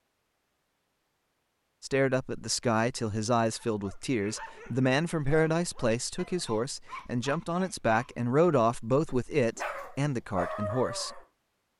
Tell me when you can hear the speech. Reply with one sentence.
You can hear the speech from 1.8 to 11.2 s.